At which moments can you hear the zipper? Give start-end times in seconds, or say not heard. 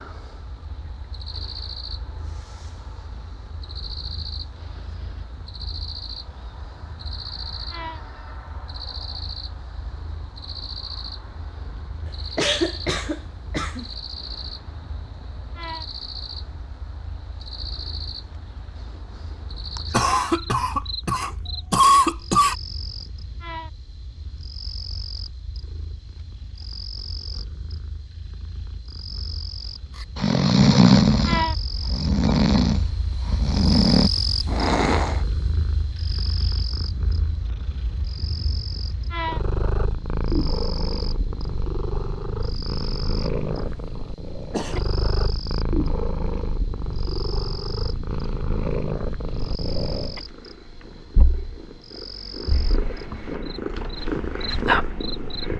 not heard.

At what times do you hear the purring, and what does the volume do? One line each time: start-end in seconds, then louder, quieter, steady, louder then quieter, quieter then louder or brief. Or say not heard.
0.0-55.5 louder.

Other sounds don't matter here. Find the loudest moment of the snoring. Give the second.
31 s.